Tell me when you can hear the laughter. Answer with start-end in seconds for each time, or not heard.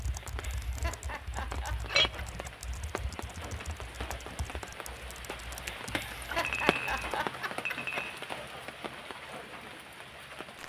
0.2-2.5, 5.8-8.1.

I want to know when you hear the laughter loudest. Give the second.
7 s.